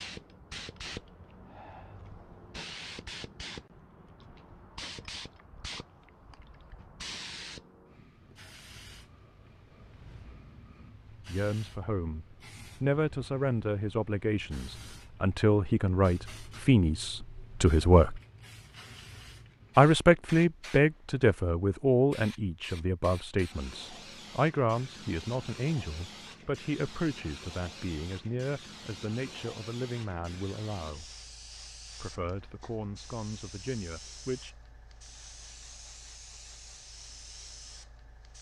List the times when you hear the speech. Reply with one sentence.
You can hear the speech from 11.2 to 18.2 s, from 19.8 to 31.1 s and from 32.0 to 34.5 s.